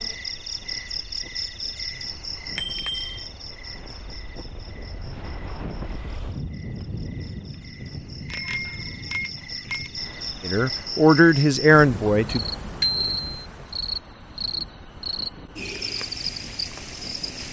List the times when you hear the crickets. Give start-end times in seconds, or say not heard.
0.0-17.4.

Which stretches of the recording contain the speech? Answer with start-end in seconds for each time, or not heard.
10.4-12.4.